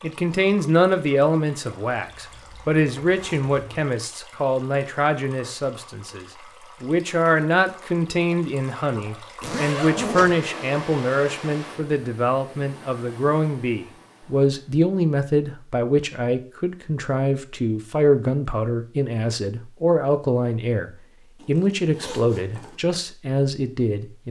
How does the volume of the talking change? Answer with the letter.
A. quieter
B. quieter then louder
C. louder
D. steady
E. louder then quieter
D.